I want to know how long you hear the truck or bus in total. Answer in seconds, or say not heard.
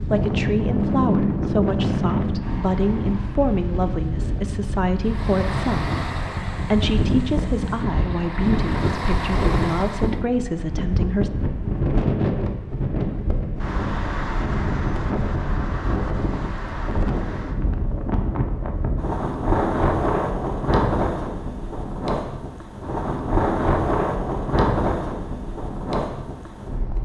5 s.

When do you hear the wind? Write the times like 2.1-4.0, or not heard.
0.0-27.0.